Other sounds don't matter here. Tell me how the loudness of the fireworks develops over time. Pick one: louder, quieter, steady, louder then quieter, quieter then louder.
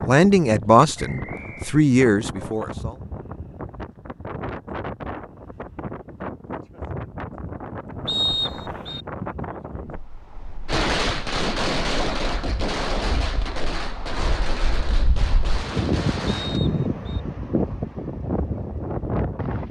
quieter.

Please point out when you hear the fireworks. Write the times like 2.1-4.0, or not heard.
10.7-16.6.